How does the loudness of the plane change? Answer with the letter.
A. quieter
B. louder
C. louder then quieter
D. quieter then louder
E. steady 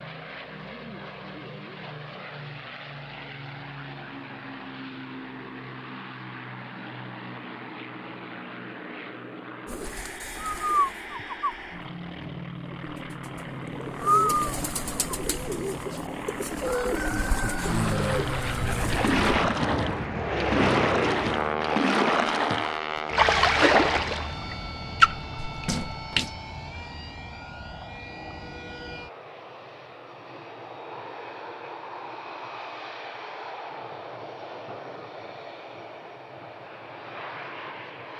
C.